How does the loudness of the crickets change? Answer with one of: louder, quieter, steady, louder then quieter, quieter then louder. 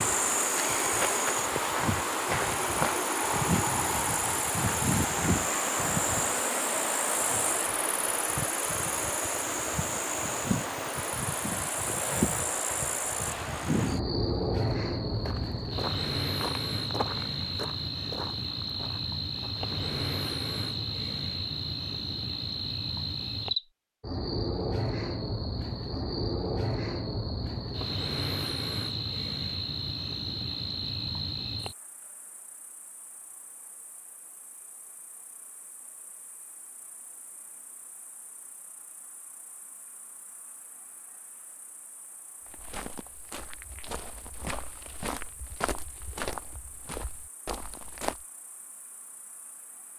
quieter.